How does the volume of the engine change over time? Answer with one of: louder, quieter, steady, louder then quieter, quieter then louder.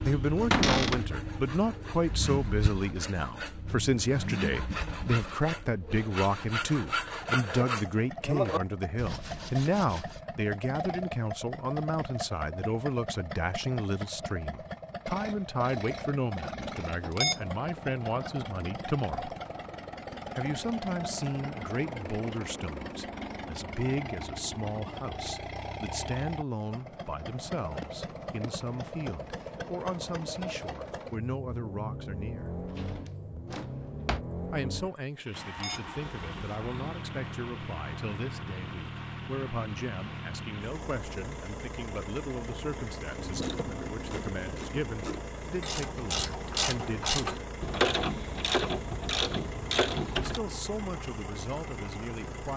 steady.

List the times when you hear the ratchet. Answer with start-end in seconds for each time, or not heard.
43.1-50.4.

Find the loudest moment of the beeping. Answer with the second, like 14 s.
17 s.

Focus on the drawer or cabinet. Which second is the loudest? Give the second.
1 s.